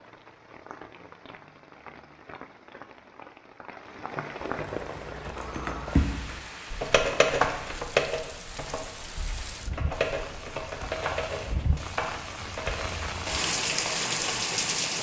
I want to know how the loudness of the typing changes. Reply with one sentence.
The loudness of the typing goes up, then down.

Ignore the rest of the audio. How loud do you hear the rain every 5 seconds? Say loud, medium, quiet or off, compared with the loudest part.
medium, medium, loud.